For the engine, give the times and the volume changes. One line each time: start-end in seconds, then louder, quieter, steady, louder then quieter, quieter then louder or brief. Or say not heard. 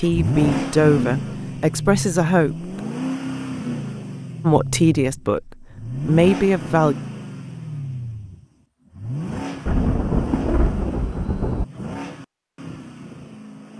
0.0-13.7 quieter.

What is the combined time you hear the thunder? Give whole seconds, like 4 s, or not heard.
2 s.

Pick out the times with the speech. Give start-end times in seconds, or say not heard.
0.0-2.6, 4.4-7.0.